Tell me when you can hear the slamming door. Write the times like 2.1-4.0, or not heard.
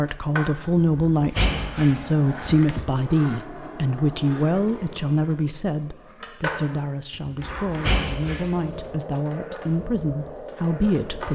0.8-2.9, 7.2-8.9.